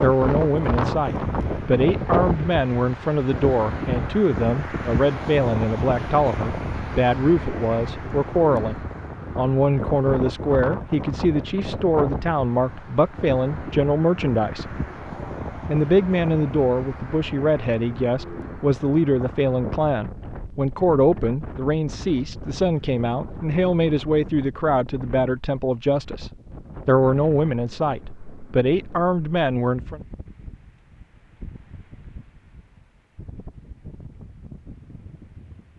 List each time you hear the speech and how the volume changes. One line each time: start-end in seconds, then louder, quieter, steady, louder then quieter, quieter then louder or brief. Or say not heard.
0.0-14.8 steady
15.6-30.0 steady.